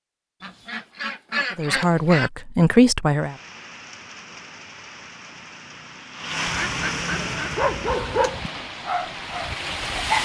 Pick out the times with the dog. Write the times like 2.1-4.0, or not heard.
7.4-10.2.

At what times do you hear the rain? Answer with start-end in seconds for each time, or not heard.
3.1-10.2.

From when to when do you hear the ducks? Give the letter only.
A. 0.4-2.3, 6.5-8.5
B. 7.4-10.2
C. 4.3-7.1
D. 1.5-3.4
A.